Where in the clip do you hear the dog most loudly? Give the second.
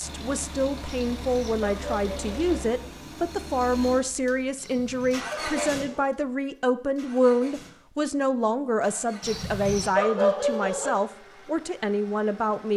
10 s.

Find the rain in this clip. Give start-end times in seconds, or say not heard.
not heard.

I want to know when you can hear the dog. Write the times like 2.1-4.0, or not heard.
0.8-2.6, 4.5-6.1, 9.2-10.9.